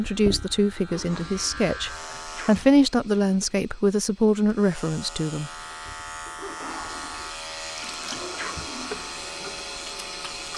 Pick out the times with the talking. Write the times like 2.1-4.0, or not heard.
0.0-5.5.